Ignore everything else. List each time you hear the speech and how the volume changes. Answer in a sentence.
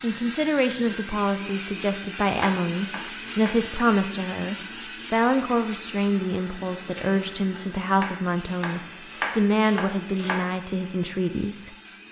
You can hear the speech from 0.0 to 11.8 s, at a steady volume.